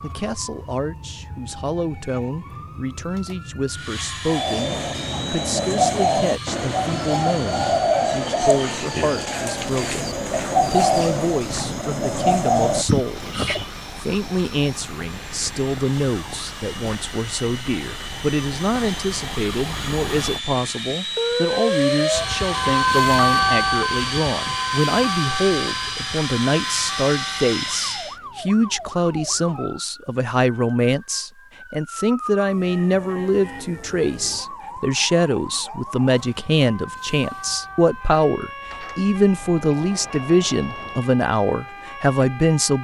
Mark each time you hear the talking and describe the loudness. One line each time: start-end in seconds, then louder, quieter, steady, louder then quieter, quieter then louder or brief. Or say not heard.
0.0-42.8 louder.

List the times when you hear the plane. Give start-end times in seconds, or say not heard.
3.7-28.2.